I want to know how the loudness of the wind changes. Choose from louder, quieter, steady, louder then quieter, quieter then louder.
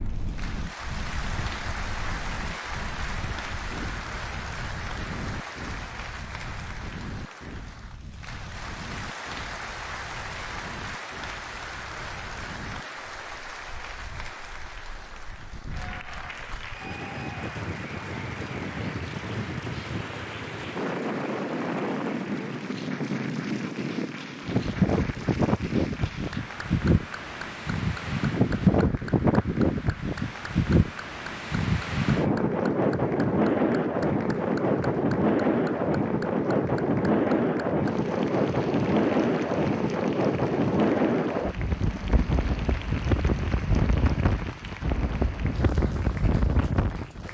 louder.